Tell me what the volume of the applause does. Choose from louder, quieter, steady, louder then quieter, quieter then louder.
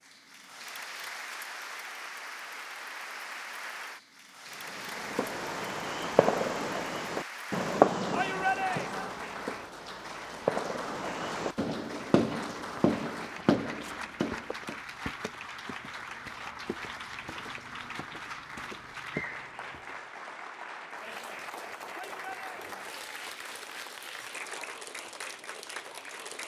steady.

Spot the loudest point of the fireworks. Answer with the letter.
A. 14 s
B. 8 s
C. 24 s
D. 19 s
B.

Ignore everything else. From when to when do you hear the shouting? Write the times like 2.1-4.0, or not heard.
8.1-9.2, 21.9-22.8.